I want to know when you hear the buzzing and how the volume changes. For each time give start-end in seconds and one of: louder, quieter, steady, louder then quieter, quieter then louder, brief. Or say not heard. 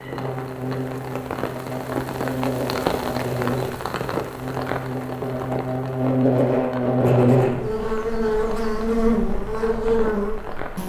0.0-10.8 louder.